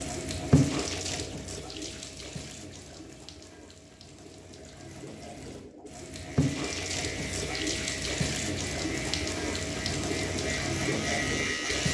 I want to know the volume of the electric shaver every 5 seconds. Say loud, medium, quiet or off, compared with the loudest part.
off, medium, loud.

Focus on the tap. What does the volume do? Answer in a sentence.
The loudness of the tap goes down, then up.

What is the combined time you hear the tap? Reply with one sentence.
You can hear the tap for 12 seconds altogether.